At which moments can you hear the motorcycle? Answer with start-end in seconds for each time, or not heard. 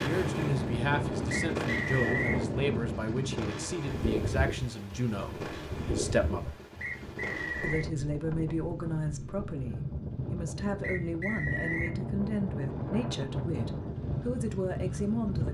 0.0-15.4.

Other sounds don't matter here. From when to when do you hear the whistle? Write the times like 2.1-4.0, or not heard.
1.3-2.4, 6.8-7.8, 10.8-11.9.